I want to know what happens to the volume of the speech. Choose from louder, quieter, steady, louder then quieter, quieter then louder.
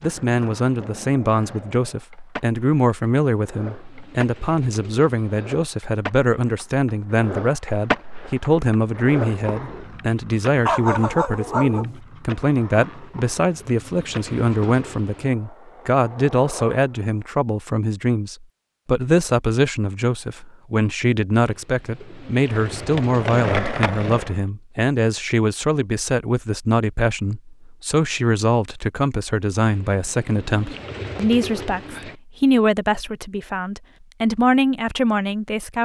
steady.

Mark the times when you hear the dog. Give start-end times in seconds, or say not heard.
10.7-12.0.